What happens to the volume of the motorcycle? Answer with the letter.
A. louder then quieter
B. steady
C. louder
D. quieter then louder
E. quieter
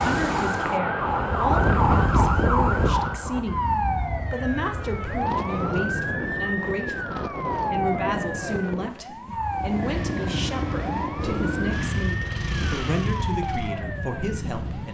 E.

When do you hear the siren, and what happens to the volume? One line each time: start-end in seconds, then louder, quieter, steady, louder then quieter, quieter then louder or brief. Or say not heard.
0.0-14.8 quieter.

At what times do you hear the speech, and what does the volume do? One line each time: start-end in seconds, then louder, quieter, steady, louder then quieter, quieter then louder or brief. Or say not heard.
0.0-14.8 steady.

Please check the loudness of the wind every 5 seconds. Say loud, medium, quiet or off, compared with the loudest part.
loud, medium, medium.